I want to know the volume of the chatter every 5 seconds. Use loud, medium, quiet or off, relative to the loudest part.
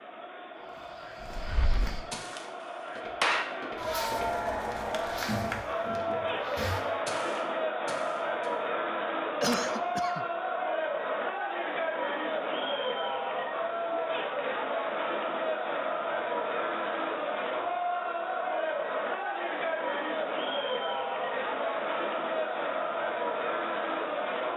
medium, loud, loud, loud, loud.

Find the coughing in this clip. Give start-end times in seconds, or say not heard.
9.4-10.2.